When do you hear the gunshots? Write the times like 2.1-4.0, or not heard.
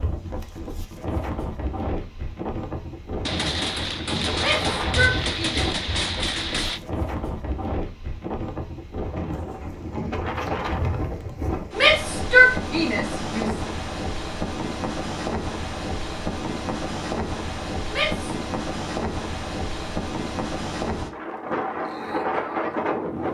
3.2-6.8.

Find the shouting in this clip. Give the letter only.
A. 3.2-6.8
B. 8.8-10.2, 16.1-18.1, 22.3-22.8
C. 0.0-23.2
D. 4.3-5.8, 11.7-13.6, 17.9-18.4
D.